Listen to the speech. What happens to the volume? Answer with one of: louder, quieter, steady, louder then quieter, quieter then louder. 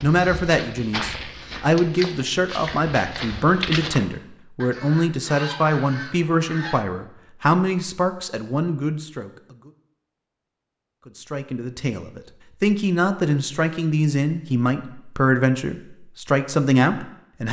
steady.